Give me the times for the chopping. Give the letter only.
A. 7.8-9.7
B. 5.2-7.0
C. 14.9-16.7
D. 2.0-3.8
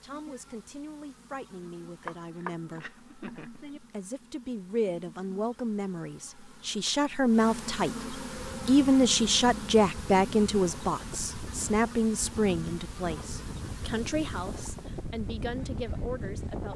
D.